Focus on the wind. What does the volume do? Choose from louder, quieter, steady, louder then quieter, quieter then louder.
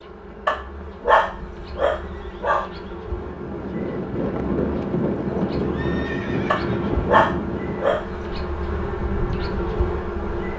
quieter.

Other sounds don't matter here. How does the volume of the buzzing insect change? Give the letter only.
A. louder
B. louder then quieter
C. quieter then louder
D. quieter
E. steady
A.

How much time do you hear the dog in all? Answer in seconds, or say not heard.
4 s.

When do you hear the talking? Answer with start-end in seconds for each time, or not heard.
not heard.